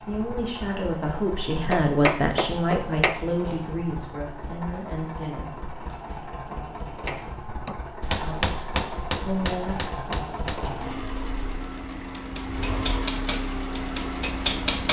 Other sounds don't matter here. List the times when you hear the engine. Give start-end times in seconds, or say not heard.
0.0-14.8.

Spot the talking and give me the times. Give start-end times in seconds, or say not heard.
0.0-5.7, 8.2-9.8.